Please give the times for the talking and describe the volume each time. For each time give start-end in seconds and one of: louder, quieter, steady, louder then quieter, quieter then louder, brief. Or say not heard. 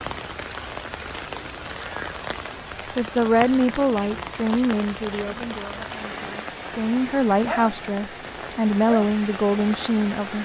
3.0-10.4 quieter then louder.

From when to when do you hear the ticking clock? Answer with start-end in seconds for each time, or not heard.
not heard.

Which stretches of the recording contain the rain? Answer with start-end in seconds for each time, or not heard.
0.0-10.4.